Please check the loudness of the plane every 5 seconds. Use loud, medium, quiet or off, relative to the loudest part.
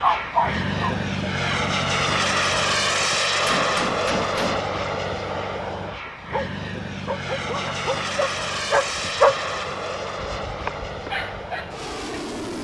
loud, medium, medium.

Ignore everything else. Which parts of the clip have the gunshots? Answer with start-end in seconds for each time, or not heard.
3.4-4.7.